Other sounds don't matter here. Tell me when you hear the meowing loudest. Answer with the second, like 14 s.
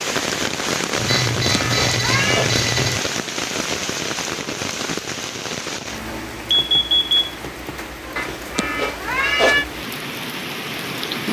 9 s.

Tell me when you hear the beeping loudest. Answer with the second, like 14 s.
7 s.